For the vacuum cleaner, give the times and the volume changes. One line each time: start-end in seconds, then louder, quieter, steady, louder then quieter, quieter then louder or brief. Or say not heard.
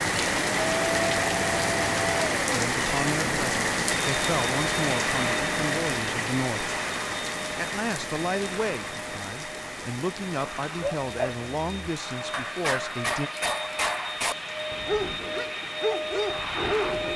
0.0-17.1 quieter then louder.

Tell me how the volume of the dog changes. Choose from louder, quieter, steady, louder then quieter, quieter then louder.
louder.